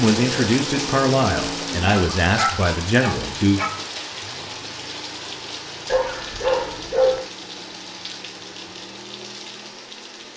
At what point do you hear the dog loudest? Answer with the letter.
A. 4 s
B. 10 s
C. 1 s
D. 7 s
D.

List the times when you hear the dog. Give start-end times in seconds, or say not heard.
1.9-3.6, 5.9-7.2.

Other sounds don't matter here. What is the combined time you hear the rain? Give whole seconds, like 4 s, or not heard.
10 s.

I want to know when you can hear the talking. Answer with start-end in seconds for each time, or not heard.
0.0-3.6.